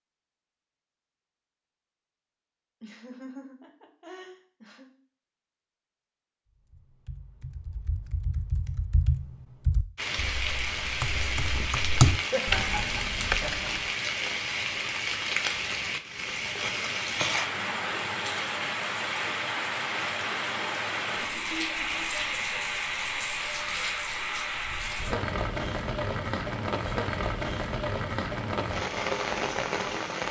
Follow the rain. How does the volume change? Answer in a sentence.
The volume of the rain stays about the same.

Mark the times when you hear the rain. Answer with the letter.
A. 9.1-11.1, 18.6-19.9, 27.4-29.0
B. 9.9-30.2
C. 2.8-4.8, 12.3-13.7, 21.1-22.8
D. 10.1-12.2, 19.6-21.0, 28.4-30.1
B.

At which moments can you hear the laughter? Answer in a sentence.
You can hear the laughter from 2.8 to 4.8 s, from 12.3 to 13.7 s and from 21.1 to 22.8 s.